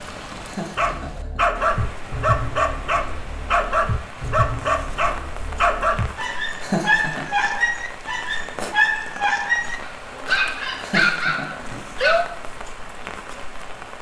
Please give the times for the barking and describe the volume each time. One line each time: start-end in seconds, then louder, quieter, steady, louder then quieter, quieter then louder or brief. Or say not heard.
0.8-12.2 steady.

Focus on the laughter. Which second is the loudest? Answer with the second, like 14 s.
7 s.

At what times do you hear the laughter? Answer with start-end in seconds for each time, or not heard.
0.5-1.4, 6.6-7.2, 10.8-11.9.